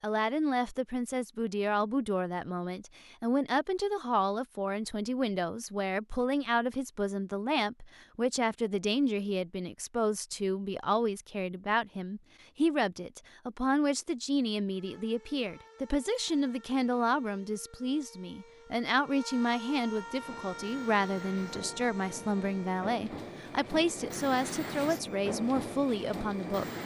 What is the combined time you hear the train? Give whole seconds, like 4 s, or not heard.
7 s.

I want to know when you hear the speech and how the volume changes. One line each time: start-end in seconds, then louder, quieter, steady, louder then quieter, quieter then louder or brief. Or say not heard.
0.0-26.6 steady.